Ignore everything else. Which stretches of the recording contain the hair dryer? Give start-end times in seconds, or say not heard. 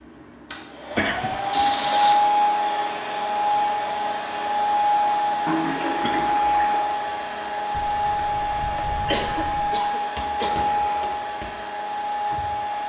0.0-12.8.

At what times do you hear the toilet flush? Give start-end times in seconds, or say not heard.
1.5-2.2, 5.5-6.8, 10.6-11.2.